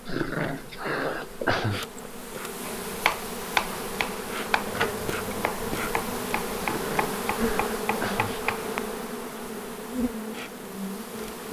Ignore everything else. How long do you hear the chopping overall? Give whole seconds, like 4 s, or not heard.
6 s.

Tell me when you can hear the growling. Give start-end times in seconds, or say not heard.
0.1-1.9, 6.6-8.4.